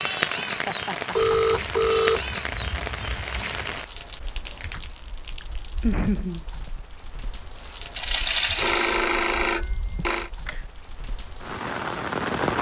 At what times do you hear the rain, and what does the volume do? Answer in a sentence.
You can hear the rain from 0.0 to 12.5 s, getting quieter then louder.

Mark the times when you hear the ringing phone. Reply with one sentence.
The ringing phone can be heard from 1.1 to 3.8 s and from 8.0 to 10.3 s.